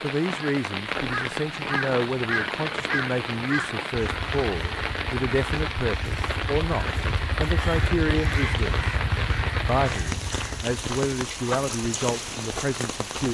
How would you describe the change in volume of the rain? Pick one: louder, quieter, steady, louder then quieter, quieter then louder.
steady.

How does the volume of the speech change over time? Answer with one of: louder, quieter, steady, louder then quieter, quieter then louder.
steady.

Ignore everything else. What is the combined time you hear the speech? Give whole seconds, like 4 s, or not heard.
12 s.